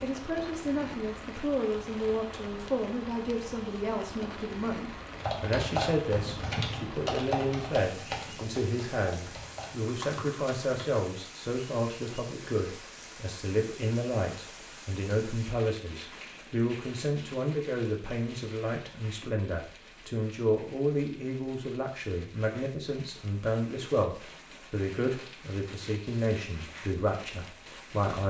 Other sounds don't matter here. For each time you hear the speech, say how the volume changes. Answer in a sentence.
You can hear the speech from 0.0 to 28.2 s, at a steady volume.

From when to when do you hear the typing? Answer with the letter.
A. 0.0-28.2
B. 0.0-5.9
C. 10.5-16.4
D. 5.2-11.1
D.